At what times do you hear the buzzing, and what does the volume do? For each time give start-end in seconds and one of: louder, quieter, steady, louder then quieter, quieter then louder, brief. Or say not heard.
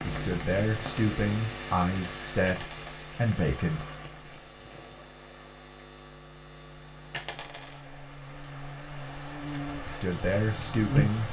0.0-11.2 quieter then louder.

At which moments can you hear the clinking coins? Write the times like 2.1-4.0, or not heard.
2.5-3.0, 7.1-7.9.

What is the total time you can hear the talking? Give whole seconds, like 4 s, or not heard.
5 s.